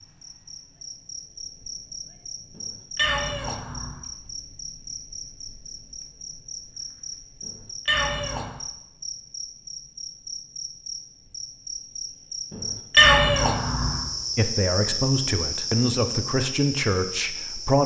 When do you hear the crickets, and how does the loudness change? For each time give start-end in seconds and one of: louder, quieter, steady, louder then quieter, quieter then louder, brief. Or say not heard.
0.0-17.8 louder.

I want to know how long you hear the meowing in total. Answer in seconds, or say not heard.
4 s.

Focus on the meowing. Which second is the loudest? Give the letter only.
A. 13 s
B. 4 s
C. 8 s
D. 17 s
A.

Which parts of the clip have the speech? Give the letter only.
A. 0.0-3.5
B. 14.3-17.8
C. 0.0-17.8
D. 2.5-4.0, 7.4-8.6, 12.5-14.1
B.